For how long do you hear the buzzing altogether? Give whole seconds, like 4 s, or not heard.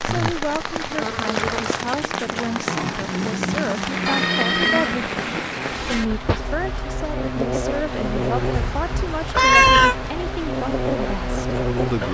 12 s.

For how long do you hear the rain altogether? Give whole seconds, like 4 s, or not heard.
12 s.